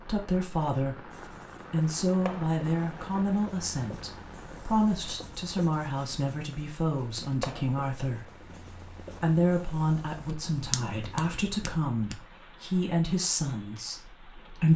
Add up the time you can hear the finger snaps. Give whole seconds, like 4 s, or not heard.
2 s.